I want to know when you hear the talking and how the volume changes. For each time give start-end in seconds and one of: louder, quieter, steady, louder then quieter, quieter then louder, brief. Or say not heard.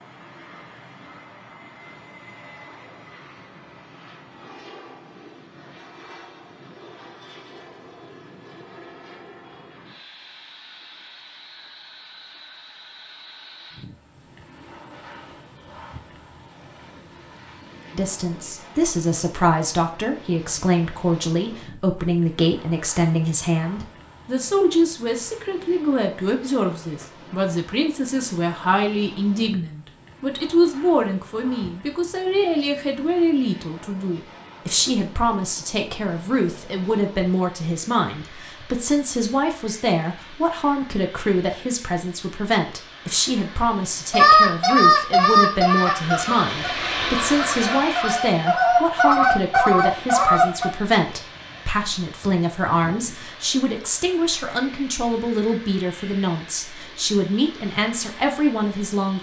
17.9-59.1 steady.